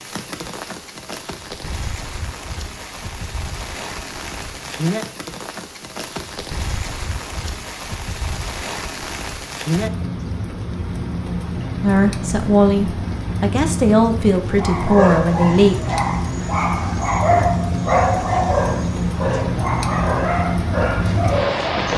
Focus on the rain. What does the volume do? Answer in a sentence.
The loudness of the rain goes up.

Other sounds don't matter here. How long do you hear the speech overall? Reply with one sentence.
The speech can be heard for 4 seconds in total.